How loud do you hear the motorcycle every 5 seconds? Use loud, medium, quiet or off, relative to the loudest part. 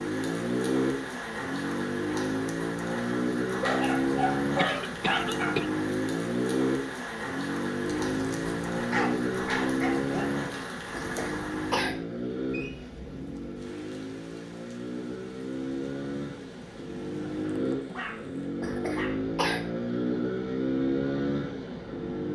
loud, loud, medium, loud, loud.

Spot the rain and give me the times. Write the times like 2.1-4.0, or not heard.
0.0-18.6.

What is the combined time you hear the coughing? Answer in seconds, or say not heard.
3 s.